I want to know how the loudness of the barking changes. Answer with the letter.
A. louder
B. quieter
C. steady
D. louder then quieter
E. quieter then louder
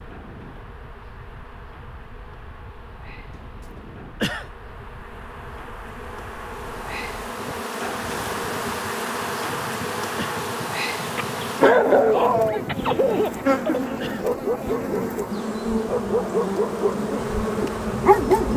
B.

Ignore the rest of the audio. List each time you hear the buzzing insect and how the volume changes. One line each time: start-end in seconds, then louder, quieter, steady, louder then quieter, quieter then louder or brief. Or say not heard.
0.0-18.5 louder.